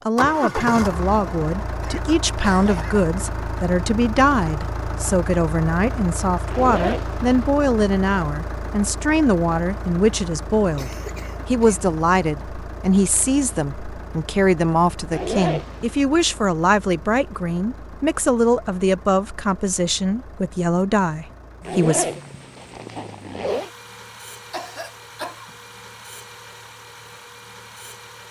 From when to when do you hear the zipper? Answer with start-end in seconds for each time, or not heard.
6.5-7.3, 15.1-15.8, 21.6-23.7.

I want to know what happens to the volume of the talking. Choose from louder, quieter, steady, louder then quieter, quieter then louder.
steady.